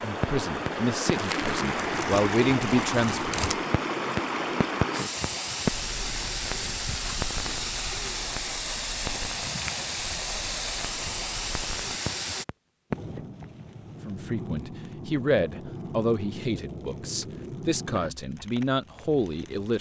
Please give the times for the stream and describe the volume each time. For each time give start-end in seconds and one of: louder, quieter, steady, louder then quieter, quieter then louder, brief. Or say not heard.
0.0-12.4 steady.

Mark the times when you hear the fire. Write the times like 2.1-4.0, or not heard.
0.0-19.7.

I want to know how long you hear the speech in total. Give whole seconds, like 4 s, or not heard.
9 s.